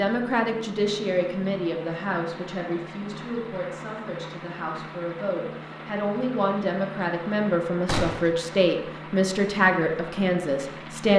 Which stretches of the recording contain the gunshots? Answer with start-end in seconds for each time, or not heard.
7.8-8.3.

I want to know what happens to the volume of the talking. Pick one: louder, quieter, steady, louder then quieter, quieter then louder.
quieter then louder.